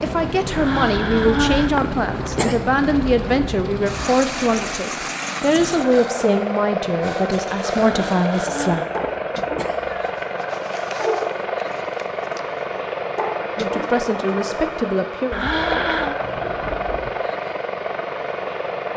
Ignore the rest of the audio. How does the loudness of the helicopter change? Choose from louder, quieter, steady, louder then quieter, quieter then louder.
steady.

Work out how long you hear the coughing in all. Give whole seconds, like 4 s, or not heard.
5 s.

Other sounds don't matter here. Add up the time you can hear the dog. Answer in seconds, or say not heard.
8 s.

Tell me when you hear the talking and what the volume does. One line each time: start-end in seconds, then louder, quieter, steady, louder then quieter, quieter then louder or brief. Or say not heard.
0.0-8.8 steady
13.6-15.6 brief.